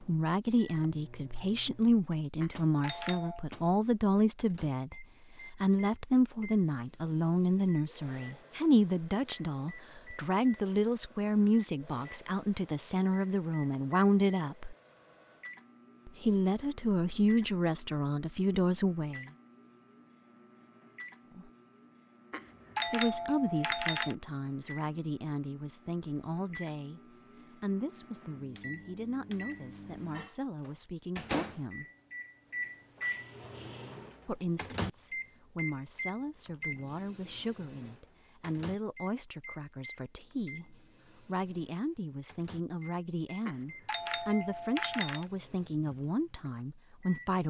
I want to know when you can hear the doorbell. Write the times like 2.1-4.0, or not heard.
2.4-3.5, 22.3-24.1, 43.5-45.3.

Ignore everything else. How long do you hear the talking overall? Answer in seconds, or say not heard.
40 s.